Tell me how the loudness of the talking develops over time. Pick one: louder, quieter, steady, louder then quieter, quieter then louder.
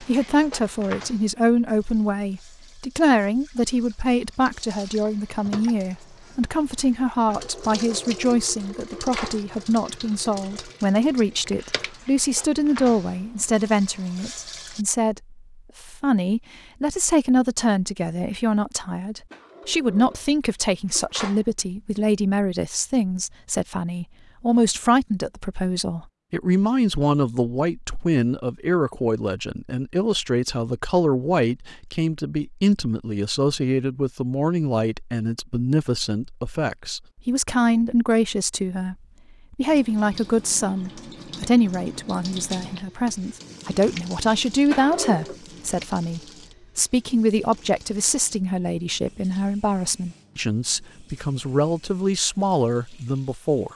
steady.